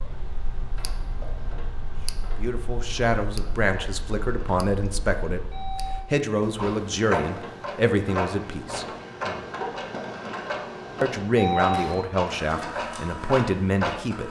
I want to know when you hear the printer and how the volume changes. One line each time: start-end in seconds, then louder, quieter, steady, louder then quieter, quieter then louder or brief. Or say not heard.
0.0-14.2 louder.